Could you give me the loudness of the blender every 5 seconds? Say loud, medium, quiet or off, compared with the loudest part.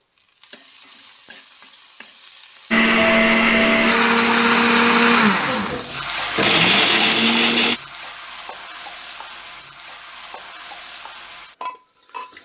loud, loud, off.